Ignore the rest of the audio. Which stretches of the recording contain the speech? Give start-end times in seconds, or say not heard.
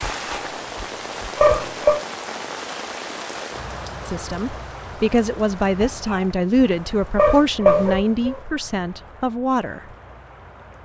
4.0-9.8.